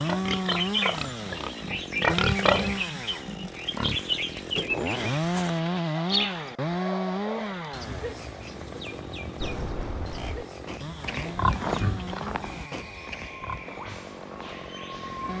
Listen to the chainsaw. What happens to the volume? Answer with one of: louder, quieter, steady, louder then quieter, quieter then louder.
quieter.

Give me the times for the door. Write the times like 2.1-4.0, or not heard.
4.4-5.2, 9.4-10.4.